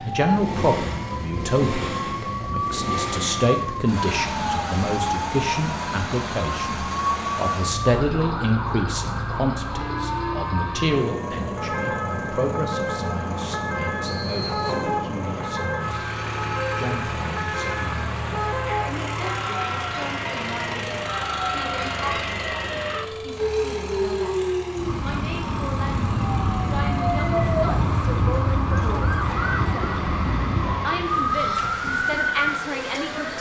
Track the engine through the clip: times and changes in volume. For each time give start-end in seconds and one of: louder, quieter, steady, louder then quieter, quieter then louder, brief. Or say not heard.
0.0-33.3 quieter.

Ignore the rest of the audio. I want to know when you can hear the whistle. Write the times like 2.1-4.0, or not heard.
14.1-14.8.